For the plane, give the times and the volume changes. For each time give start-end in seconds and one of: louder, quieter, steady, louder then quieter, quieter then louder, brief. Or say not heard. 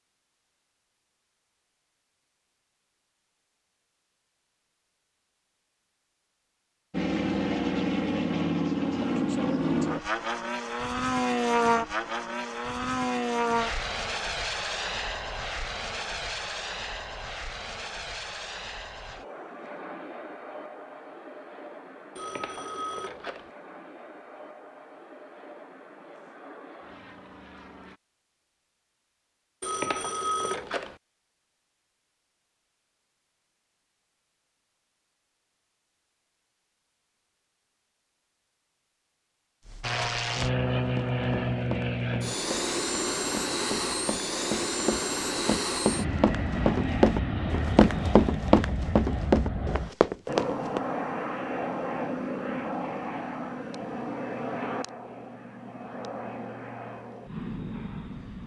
6.9-28.0 quieter
39.8-58.4 quieter.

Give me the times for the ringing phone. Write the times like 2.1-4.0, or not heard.
22.1-23.5, 29.6-30.9.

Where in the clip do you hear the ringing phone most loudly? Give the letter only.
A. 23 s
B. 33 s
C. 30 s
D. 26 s
C.